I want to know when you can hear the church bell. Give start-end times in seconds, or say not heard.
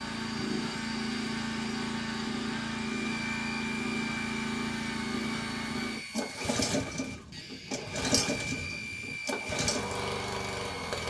not heard.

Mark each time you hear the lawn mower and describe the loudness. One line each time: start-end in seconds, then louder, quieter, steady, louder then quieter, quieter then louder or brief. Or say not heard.
0.0-11.0 steady.